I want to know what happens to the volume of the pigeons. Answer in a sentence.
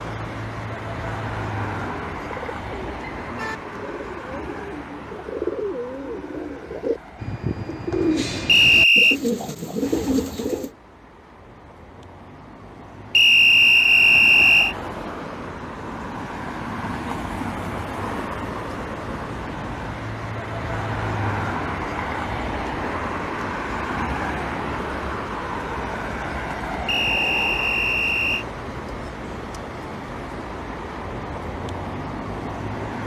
The volume of the pigeons goes up.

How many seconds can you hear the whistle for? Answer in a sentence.
The whistle can be heard for 4 seconds in total.